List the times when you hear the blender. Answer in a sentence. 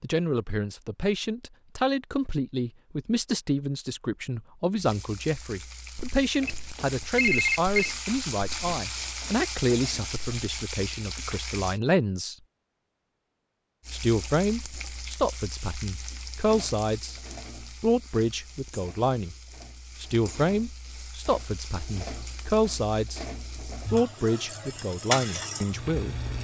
The blender can't be heard in this clip.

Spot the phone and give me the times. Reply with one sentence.
The phone can be heard from 7.2 to 8.0 s.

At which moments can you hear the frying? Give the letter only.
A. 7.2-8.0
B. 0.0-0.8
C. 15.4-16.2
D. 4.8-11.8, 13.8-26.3
D.